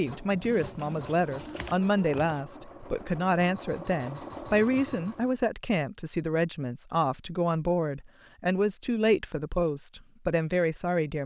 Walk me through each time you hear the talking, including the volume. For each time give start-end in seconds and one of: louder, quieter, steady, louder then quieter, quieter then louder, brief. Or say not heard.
0.0-11.2 steady.